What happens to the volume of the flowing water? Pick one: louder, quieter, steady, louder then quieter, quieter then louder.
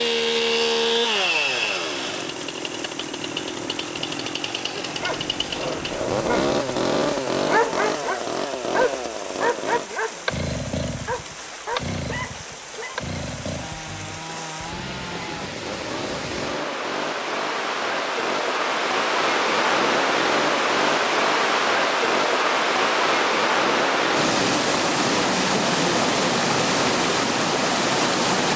louder.